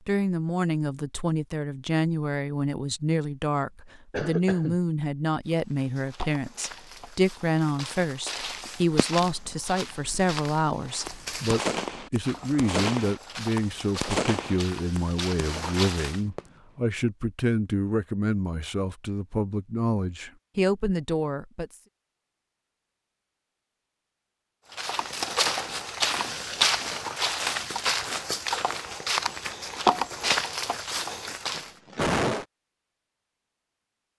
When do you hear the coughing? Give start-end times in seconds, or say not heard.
4.1-4.8, 31.6-32.5.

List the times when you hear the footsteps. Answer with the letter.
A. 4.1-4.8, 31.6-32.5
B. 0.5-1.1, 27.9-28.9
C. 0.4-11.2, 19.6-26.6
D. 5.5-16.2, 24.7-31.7
D.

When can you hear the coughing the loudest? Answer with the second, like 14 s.
32 s.